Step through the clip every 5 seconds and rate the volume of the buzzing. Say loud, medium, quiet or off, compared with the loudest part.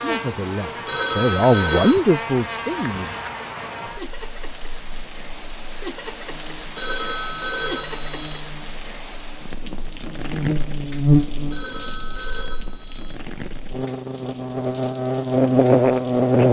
quiet, quiet, medium, loud.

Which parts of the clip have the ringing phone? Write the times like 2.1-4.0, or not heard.
0.8-2.0, 6.8-8.4, 11.5-13.2.